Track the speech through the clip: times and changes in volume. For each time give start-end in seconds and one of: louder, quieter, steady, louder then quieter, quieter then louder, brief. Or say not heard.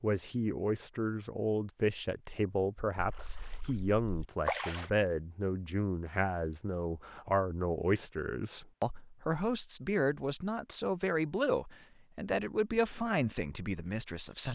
0.0-14.5 steady.